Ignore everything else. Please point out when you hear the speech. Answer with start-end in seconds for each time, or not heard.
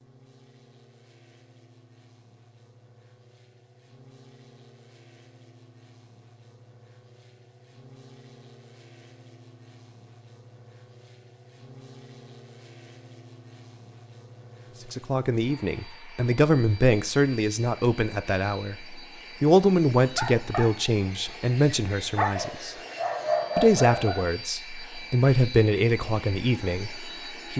14.9-22.8, 23.6-27.5.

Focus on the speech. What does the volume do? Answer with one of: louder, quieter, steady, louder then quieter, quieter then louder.
steady.